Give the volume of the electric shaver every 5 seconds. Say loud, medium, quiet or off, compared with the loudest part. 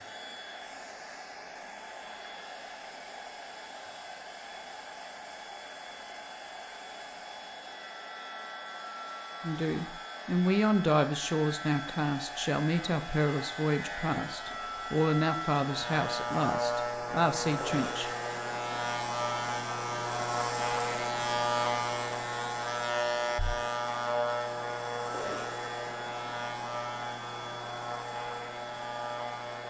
quiet, quiet, medium, loud, loud, medium.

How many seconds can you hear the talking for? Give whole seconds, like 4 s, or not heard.
9 s.